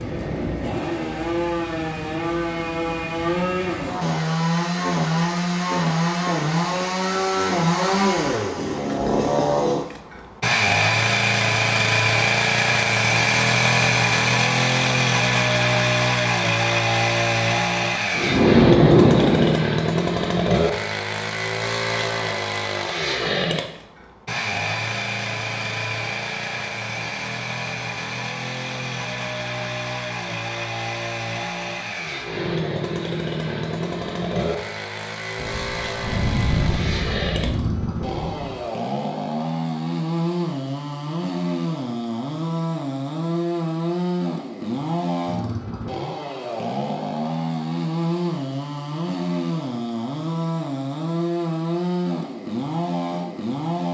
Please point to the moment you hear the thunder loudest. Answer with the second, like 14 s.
19 s.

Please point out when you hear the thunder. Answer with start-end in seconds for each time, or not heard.
18.1-19.6, 35.4-38.6.